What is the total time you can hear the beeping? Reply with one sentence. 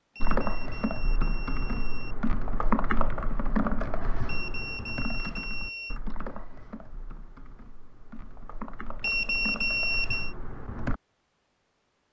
You can hear the beeping for 5 seconds altogether.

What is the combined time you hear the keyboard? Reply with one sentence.
You can hear the keyboard for 11 seconds altogether.